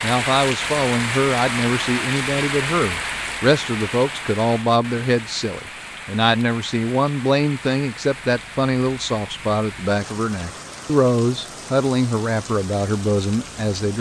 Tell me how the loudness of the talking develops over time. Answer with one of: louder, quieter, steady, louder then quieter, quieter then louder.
steady.